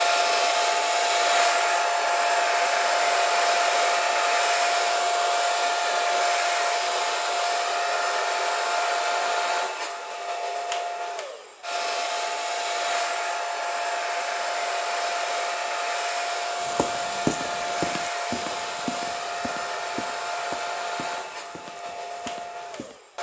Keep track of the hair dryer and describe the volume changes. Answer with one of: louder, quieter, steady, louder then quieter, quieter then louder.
quieter.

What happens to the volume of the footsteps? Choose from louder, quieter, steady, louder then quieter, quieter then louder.
quieter.